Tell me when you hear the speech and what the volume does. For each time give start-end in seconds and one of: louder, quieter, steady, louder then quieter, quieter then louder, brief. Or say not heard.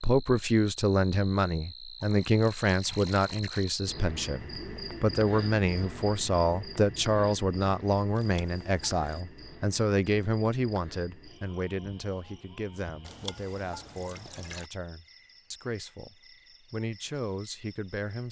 0.0-18.2 quieter.